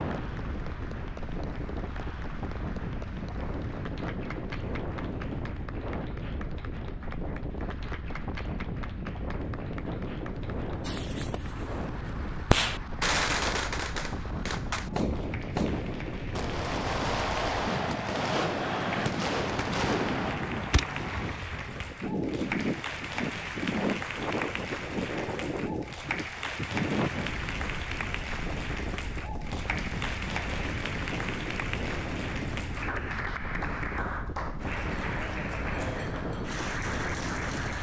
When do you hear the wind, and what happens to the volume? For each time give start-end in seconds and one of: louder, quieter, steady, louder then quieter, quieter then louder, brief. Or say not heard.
0.0-37.7 steady.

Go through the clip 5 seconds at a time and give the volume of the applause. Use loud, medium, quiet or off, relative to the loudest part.
medium, medium, medium, medium, loud, loud, loud, loud.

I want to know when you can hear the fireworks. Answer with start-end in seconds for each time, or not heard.
10.8-21.7.